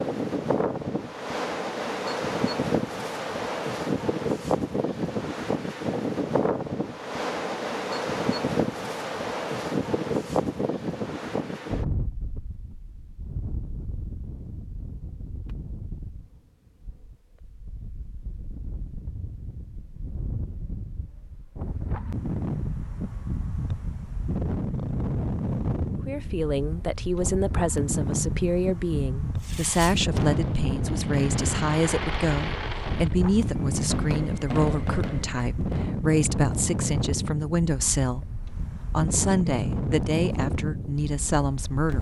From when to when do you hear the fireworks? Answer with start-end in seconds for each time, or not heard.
29.4-36.0.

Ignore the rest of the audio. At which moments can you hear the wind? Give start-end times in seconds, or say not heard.
0.0-41.9.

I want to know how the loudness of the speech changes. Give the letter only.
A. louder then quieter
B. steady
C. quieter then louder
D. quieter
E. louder
B.